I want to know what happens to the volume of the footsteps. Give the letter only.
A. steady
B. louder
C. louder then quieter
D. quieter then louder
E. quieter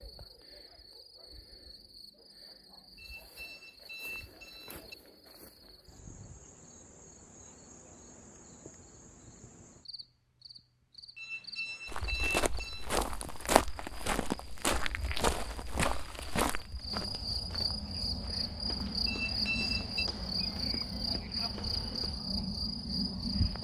E.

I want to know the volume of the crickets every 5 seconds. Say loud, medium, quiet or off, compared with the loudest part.
quiet, quiet, quiet, loud, loud.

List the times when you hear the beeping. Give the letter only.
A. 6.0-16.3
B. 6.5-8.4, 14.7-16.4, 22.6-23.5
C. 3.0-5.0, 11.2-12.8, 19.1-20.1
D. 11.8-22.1
C.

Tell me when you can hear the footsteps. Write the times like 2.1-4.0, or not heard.
11.8-22.1.